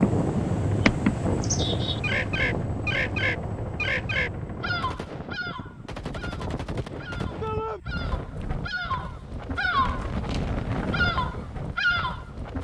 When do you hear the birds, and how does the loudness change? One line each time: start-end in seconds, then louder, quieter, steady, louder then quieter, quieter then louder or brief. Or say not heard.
0.0-10.1 quieter then louder
10.9-12.5 brief.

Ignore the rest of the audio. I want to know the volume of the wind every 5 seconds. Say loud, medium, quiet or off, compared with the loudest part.
loud, medium, loud.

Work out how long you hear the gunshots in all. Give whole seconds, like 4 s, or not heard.
3 s.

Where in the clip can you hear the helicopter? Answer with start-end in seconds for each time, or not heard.
0.0-5.0.